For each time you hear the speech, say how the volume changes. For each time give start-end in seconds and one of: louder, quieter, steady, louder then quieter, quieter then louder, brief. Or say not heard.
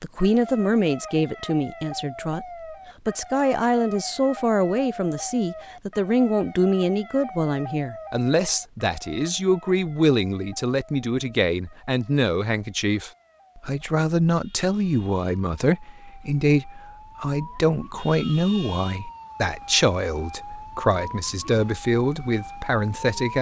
0.0-2.5 brief
3.0-23.3 steady.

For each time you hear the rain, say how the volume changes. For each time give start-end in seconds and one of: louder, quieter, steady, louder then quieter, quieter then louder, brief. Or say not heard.
not heard.